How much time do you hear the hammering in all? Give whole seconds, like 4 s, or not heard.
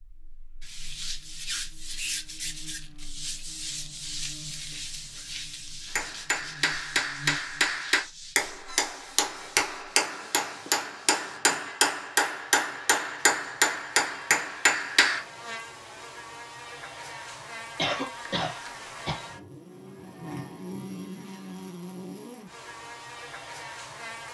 9 s.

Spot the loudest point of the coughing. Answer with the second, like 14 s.
18 s.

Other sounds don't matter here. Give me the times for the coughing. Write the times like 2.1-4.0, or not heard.
4.7-5.5, 8.7-9.8, 17.8-19.2.